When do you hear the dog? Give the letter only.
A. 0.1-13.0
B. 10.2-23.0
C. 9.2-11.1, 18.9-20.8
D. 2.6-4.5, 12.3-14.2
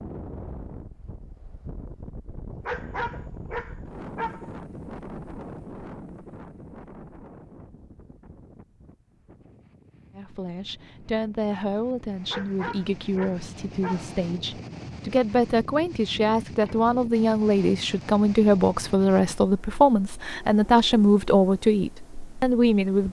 D.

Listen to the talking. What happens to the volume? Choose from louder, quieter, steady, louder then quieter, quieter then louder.
louder.